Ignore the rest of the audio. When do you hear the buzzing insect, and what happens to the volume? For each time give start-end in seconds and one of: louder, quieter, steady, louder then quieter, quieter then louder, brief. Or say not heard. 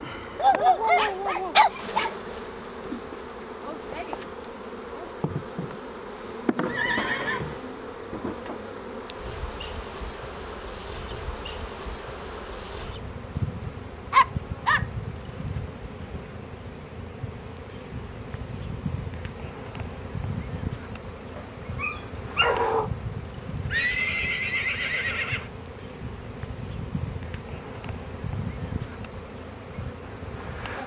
0.0-30.8 steady.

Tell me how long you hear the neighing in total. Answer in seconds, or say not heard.
3 s.